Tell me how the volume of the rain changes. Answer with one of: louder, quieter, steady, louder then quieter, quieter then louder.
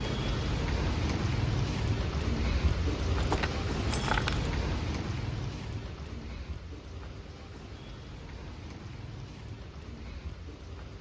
quieter.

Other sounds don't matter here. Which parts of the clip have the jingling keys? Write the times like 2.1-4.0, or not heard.
3.1-4.5.